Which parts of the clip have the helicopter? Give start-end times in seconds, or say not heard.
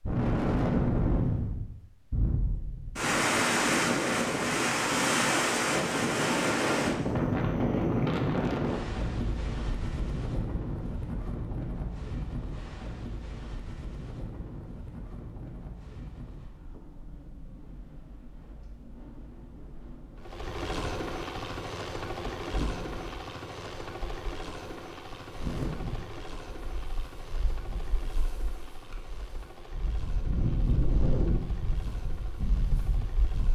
20.1-33.5.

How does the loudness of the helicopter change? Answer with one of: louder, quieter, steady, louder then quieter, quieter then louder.
quieter.